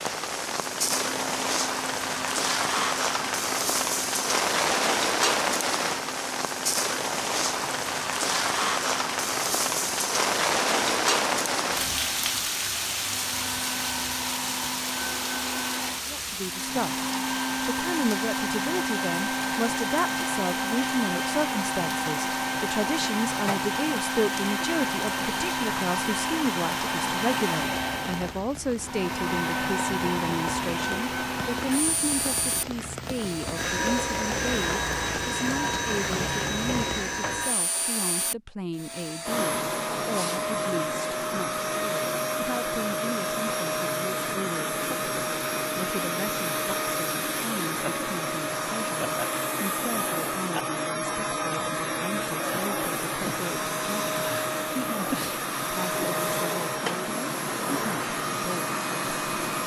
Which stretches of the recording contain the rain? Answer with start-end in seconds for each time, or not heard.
0.0-37.1.